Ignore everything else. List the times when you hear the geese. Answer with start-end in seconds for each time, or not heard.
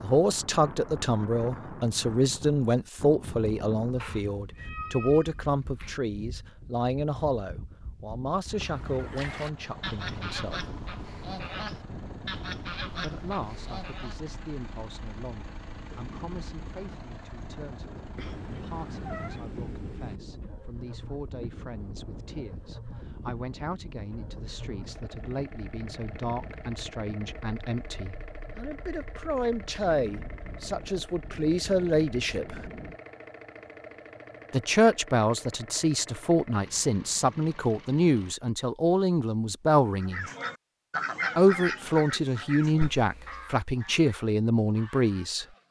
8.5-14.2, 40.0-45.6.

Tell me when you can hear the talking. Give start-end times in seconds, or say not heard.
0.0-10.7, 12.9-32.6, 34.5-40.2, 41.4-45.5.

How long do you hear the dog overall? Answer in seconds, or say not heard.
not heard.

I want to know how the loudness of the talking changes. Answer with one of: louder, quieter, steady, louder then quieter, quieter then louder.
quieter then louder.